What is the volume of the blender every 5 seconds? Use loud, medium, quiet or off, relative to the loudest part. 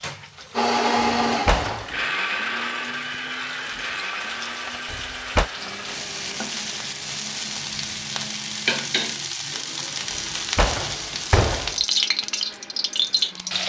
loud, quiet, quiet.